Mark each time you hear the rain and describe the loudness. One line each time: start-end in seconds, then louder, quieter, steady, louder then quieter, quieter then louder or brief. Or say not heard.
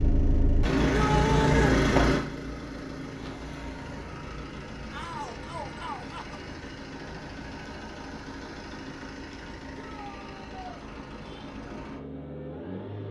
not heard.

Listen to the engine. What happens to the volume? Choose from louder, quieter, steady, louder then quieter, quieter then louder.
quieter.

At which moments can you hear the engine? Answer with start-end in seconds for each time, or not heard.
0.0-13.0.